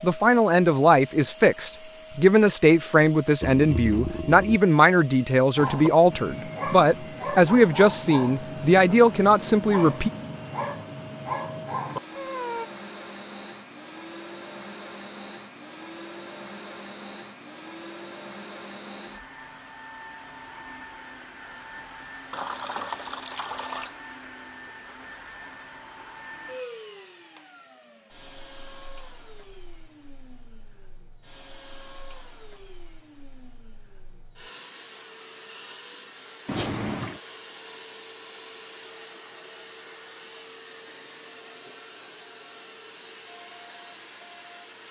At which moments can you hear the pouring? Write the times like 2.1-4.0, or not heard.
3.4-4.6, 22.3-23.9, 36.5-37.2.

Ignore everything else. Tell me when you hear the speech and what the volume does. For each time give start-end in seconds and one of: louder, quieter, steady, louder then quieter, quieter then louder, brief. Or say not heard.
0.0-10.1 steady.